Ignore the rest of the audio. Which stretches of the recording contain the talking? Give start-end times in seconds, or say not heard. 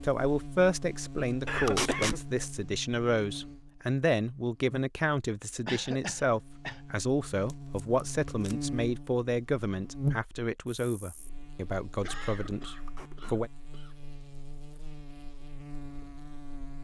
0.0-13.5.